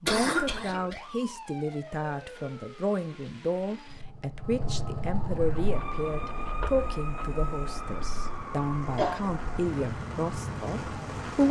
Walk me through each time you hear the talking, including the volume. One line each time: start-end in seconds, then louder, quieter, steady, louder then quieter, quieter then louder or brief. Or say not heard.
0.0-11.4 steady.